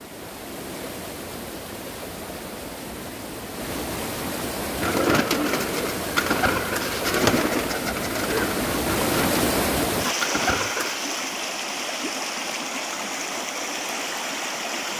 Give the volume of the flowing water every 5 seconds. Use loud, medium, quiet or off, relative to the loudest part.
medium, loud, loud.